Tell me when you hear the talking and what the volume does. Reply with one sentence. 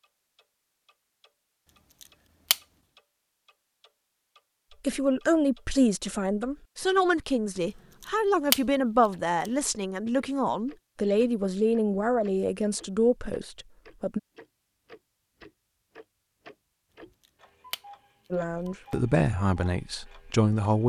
You can hear the talking from 4.8 to 14.2 s, at a steady volume; and briefly from 18.3 to 20.8 s.